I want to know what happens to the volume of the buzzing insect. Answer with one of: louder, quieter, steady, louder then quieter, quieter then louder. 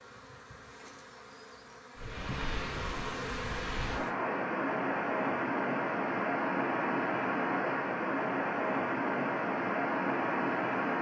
louder.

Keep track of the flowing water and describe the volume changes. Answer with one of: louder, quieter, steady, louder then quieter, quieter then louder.
louder.